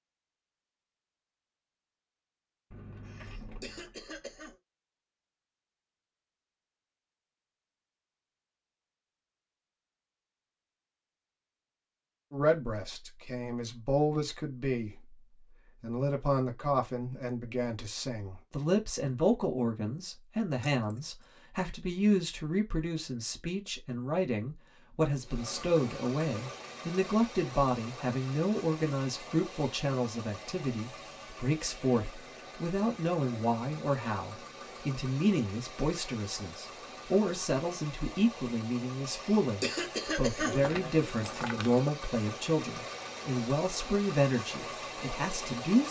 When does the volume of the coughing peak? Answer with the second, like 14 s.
40 s.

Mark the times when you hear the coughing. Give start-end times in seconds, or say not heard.
3.0-4.5, 39.0-40.8.